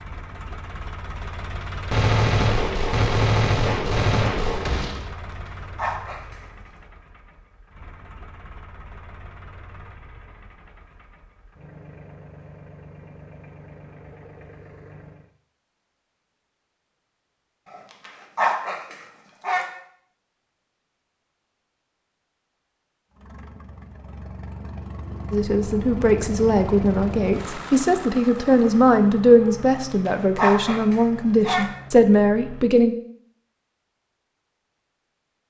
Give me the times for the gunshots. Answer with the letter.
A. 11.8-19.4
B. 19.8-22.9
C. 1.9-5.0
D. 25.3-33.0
C.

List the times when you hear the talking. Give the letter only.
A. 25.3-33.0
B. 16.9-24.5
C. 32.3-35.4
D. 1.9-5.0
A.